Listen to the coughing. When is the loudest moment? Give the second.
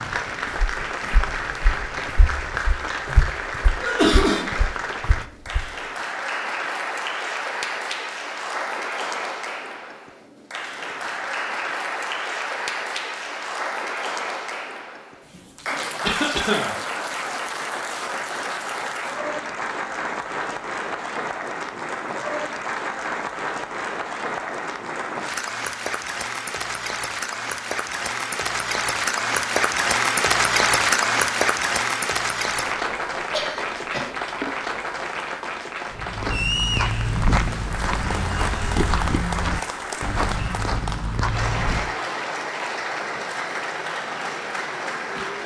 4 s.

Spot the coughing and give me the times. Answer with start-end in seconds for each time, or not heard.
3.8-4.5, 16.0-16.8, 33.3-34.1.